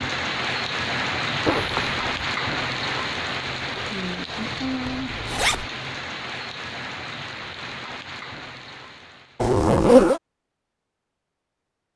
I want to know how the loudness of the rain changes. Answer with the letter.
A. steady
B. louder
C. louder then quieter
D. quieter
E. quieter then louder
D.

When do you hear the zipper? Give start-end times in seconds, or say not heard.
1.4-2.0, 4.8-5.7, 9.4-10.2.